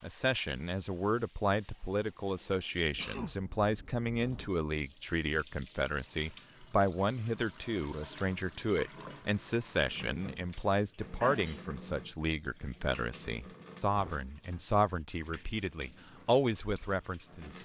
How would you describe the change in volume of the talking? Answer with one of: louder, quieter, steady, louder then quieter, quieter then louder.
steady.